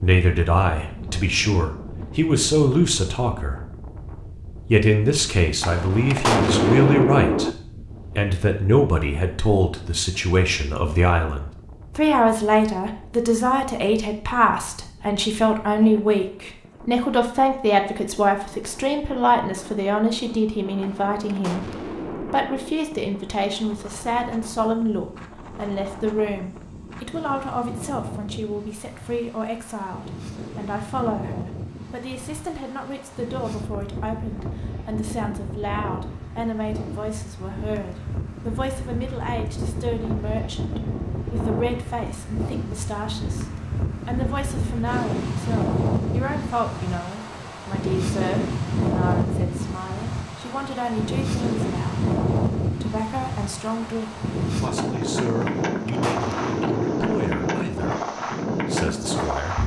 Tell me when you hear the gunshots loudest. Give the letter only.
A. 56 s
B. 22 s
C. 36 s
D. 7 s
D.